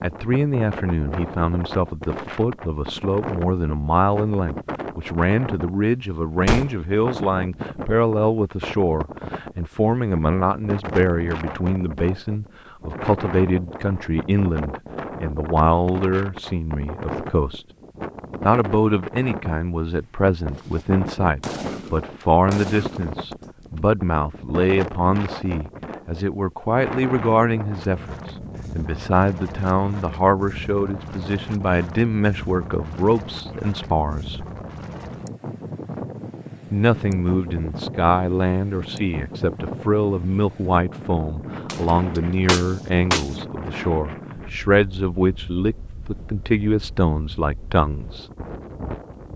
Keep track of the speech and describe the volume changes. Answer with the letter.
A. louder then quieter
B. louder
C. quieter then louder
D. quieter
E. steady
E.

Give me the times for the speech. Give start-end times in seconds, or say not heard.
0.0-17.6, 18.4-34.5, 36.7-48.2.